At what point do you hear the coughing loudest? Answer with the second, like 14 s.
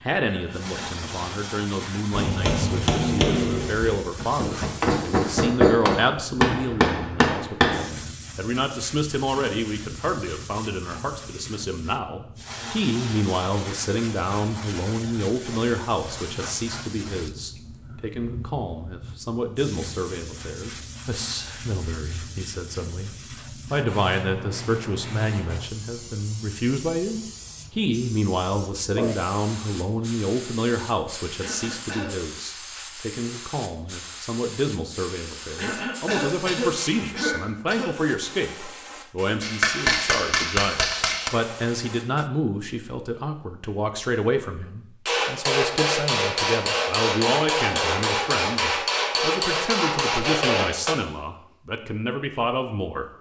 37 s.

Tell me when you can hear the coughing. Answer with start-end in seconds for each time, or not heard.
0.2-0.9, 31.4-32.1, 35.5-38.0.